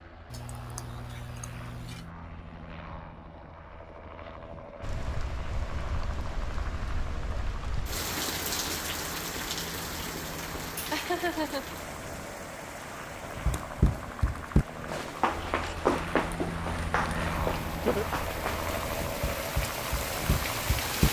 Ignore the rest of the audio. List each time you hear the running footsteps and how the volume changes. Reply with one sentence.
You can hear the running footsteps from 13.4 to 21.0 s, getting quieter.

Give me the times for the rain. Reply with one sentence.
You can hear the rain from 4.8 to 21.0 s.